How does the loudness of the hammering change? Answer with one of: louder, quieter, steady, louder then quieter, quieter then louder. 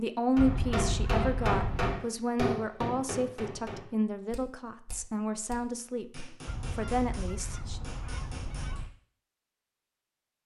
quieter then louder.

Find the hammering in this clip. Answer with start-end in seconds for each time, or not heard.
0.3-8.9.